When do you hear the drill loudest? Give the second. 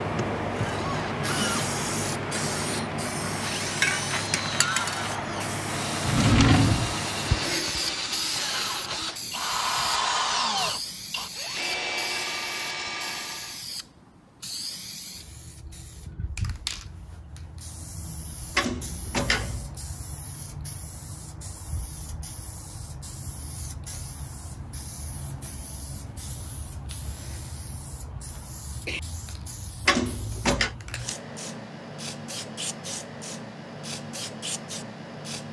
10 s.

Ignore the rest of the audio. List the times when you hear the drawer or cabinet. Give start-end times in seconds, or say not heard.
6.0-7.0, 18.6-19.8, 29.9-30.8.